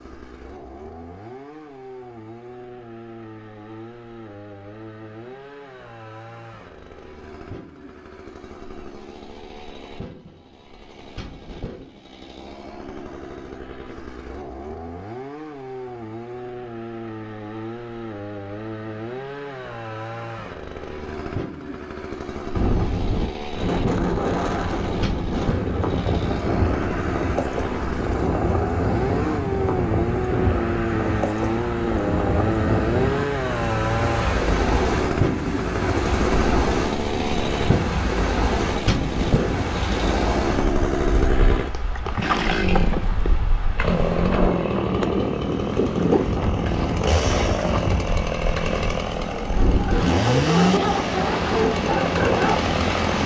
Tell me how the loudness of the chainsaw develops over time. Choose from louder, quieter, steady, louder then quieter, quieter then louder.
louder.